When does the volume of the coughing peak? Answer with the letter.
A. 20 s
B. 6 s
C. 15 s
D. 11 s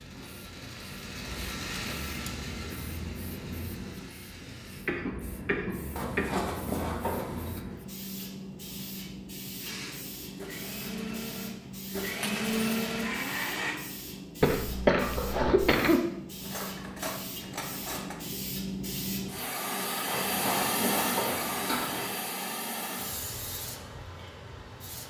C.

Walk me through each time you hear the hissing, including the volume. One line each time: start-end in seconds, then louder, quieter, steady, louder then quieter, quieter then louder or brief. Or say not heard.
0.0-25.0 louder.